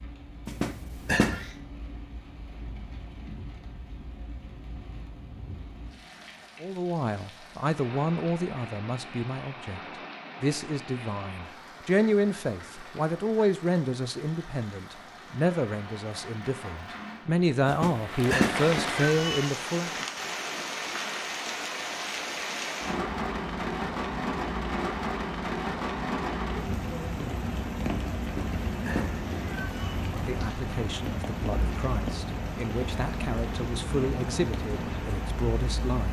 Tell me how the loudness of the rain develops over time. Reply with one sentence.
The volume of the rain goes up.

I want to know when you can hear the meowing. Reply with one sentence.
The meowing can be heard from 0.5 to 1.5 s, from 17.6 to 19.5 s and from 28.2 to 29.9 s.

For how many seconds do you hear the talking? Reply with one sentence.
You can hear the talking for 19 seconds altogether.